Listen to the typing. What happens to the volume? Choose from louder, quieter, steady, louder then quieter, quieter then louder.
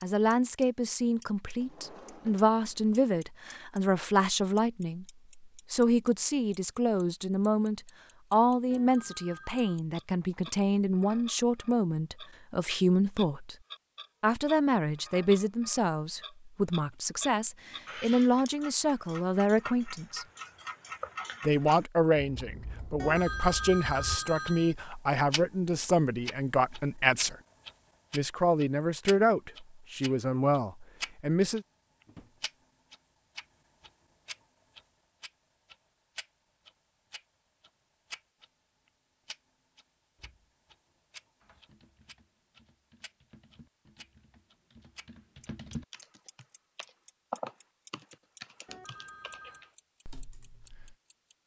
louder then quieter.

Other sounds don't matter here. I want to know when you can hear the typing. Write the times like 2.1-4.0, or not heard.
41.4-51.0.